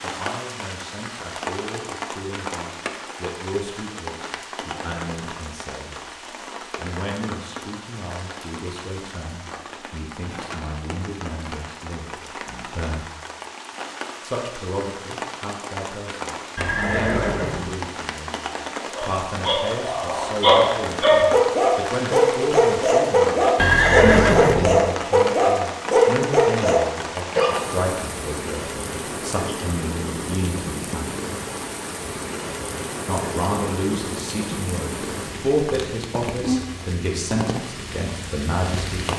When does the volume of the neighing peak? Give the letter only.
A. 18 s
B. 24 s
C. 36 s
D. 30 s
B.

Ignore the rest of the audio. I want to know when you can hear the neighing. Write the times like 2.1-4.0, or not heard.
16.6-17.8, 23.6-24.8.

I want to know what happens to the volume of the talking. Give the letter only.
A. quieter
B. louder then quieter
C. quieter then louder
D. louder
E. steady
D.